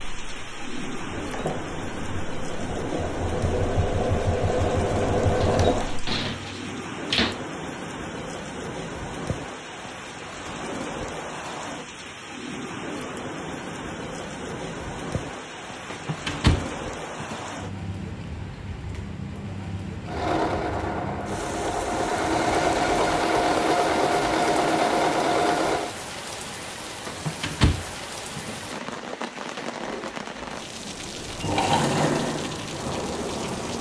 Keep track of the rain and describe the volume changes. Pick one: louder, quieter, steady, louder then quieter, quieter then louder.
steady.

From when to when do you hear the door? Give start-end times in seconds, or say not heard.
5.4-7.3, 15.9-17.5, 27.1-28.6.